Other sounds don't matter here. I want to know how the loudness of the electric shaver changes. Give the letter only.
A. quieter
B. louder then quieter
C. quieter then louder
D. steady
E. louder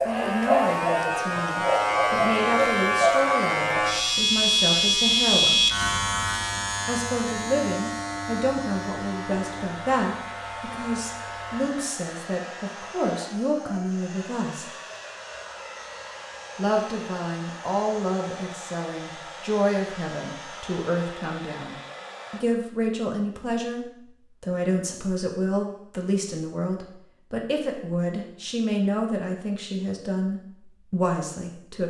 A.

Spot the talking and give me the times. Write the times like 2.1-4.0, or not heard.
0.0-5.6, 6.8-14.7, 16.6-31.8.